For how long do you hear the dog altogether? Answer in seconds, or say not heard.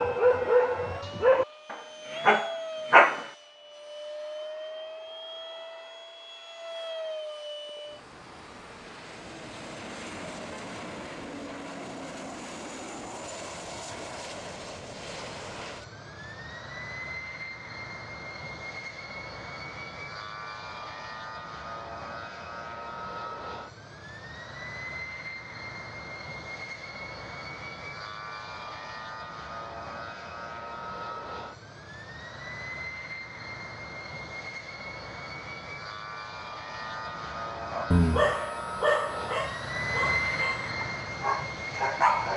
8 s.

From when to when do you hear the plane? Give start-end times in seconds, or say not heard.
0.0-42.3.